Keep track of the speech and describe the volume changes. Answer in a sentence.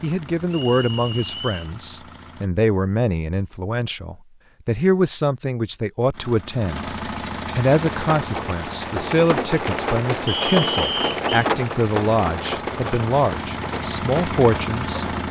The loudness of the speech stays about the same.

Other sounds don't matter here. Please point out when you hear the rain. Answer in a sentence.
The rain can be heard from 7.7 to 15.2 s.